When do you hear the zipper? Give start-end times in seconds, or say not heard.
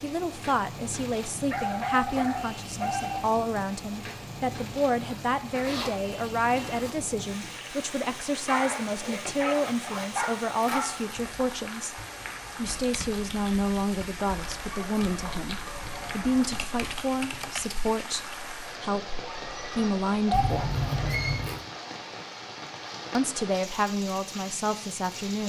5.1-6.9, 8.9-10.8, 20.3-21.6.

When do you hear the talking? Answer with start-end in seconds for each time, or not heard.
0.0-11.9, 12.6-20.8, 23.1-25.4.